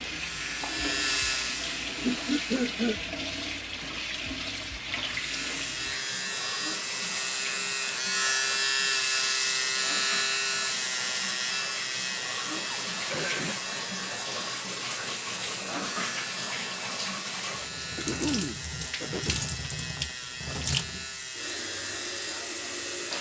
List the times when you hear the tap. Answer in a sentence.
You can hear the tap from 0.0 to 23.1 s.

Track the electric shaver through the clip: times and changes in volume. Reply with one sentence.
You can hear the electric shaver briefly from 0.1 to 2.6 s; and from 5.0 to 23.1 s, getting quieter.